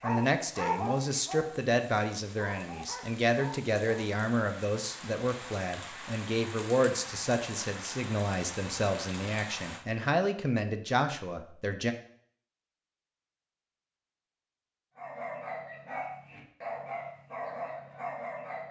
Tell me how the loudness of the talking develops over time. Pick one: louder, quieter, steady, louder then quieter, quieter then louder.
steady.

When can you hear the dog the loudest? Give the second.
1 s.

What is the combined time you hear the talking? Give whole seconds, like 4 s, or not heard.
12 s.